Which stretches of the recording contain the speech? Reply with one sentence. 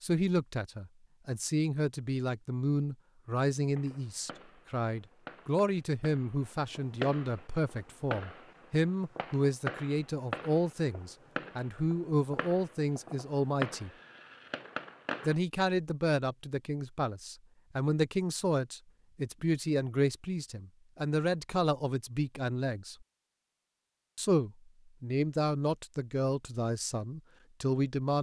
The speech can be heard from 0.0 to 13.9 s, from 15.2 to 23.1 s and from 24.1 to 28.1 s.